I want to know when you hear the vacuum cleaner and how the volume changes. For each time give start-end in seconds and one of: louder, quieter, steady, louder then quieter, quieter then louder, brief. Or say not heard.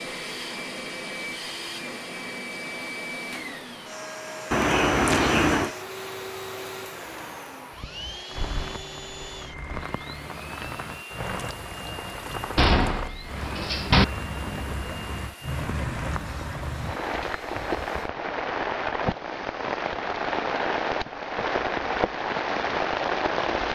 0.0-18.1 quieter.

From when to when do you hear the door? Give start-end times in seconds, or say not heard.
4.5-5.8, 12.6-14.1.